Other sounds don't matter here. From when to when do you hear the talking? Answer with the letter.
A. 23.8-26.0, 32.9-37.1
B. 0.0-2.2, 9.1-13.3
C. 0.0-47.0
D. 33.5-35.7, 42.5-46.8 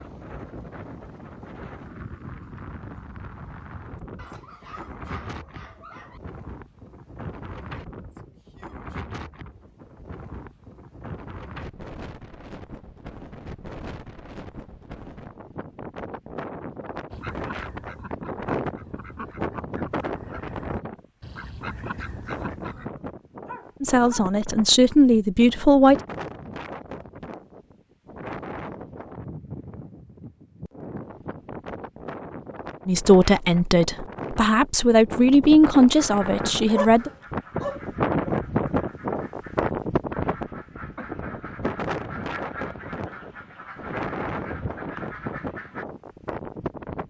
A.